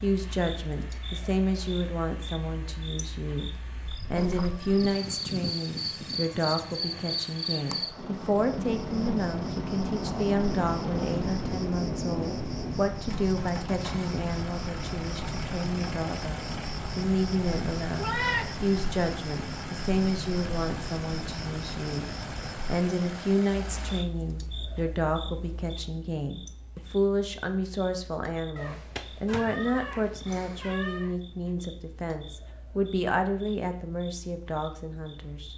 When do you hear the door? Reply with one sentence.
The door can't be heard in this clip.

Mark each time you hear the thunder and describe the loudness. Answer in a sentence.
You can hear the thunder from 8.0 to 12.8 s, at a steady volume.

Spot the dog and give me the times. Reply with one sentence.
The dog can't be heard in this clip.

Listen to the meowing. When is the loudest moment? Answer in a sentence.
The loudest moment of the meowing is at 18 seconds.